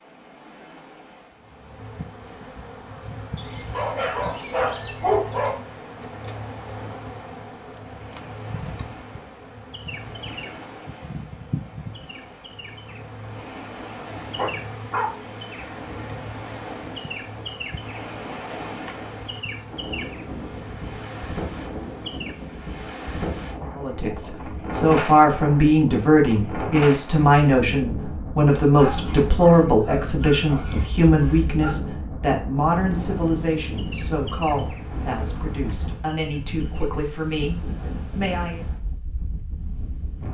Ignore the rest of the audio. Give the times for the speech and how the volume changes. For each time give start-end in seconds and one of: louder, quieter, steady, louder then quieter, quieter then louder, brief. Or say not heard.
23.8-38.6 quieter.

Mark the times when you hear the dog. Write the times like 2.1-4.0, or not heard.
3.4-5.5, 14.3-15.2, 28.8-31.8.